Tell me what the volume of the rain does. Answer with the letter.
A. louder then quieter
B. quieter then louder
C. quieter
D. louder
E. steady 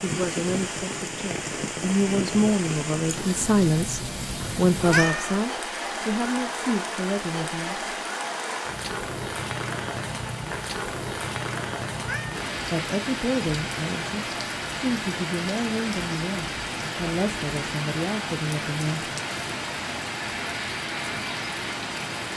E.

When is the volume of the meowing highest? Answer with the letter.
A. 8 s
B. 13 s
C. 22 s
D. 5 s
D.